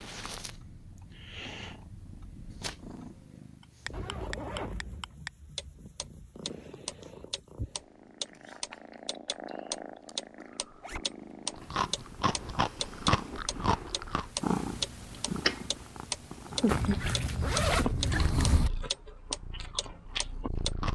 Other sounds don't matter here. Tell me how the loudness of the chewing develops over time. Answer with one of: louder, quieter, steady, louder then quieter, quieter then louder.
quieter then louder.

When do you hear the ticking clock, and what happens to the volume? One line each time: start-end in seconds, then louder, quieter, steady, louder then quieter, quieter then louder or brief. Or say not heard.
0.0-20.7 louder.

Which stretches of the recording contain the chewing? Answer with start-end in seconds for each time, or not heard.
11.5-15.6, 16.4-20.9.